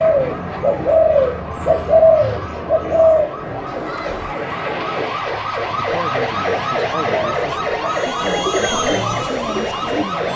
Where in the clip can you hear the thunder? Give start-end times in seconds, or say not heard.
3.6-5.2.